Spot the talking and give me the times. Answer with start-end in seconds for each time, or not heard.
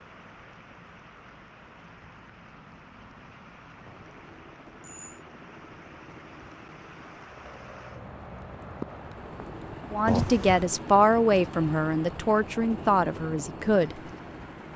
9.9-13.9.